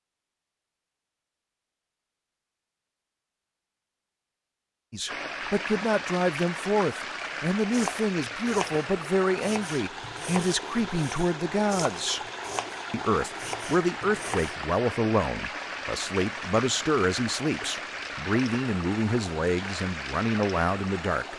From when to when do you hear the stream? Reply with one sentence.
You can hear the stream from 5.0 to 21.3 s.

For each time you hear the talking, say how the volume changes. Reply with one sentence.
You can hear the talking from 4.9 to 12.2 s, at a steady volume; and from 12.9 to 21.3 s, at a steady volume.